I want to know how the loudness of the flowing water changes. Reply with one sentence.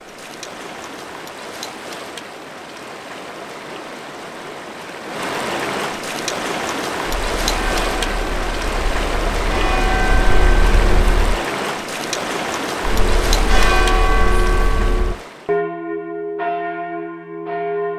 The volume of the flowing water goes up.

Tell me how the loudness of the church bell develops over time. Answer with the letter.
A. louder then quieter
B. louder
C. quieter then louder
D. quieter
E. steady
B.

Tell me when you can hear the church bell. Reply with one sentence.
You can hear the church bell from 7.3 to 11.4 s and from 12.8 to 17.9 s.